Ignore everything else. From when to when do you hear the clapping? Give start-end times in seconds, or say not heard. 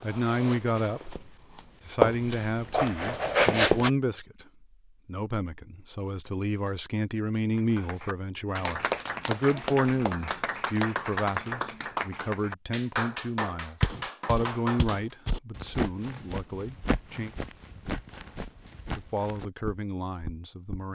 7.5-15.2.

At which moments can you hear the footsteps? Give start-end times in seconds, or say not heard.
0.0-3.9, 13.8-20.9.